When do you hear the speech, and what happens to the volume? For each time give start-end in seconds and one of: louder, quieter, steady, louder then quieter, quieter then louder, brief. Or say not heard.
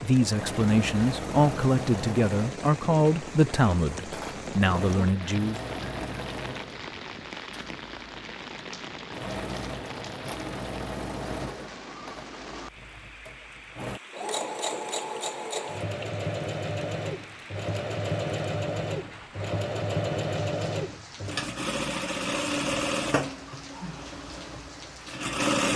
0.0-5.6 steady.